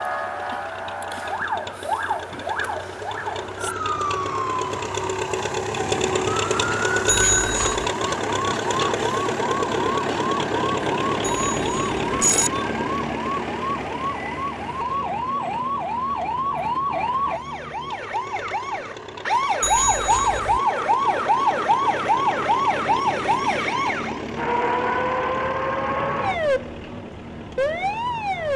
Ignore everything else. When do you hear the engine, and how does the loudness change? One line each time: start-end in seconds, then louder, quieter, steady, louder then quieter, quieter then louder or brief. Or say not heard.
0.0-28.5 louder then quieter.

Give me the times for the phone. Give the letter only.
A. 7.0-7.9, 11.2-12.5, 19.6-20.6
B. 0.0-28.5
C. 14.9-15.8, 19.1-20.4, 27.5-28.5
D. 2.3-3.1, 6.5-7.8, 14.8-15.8
A.